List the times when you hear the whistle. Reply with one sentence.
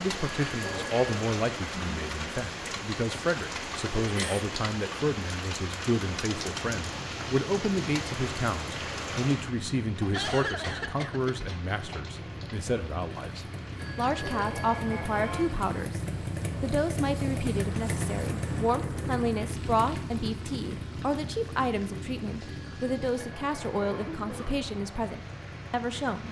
You can't hear the whistle here.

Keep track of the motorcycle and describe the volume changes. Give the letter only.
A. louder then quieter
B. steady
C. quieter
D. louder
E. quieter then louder
A.